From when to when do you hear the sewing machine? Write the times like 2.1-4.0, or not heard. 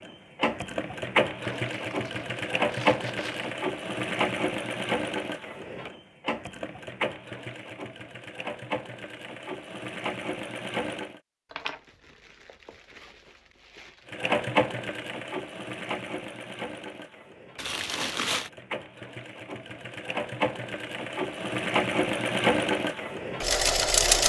0.0-11.2, 14.1-24.2.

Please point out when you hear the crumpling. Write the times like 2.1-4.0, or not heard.
1.4-3.5, 11.5-14.1, 17.6-18.5.